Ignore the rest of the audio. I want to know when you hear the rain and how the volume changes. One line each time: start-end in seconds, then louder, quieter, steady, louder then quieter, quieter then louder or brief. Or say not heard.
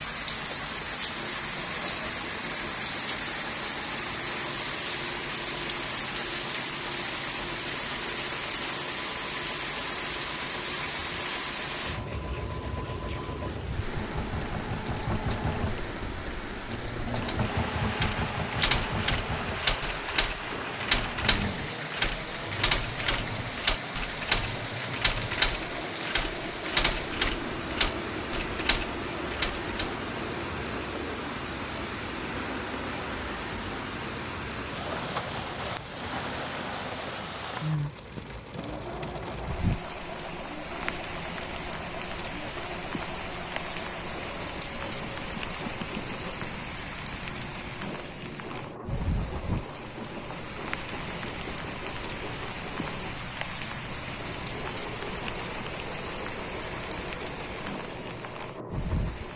0.0-59.3 steady.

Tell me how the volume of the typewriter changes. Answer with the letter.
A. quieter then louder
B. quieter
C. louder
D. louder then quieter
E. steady
E.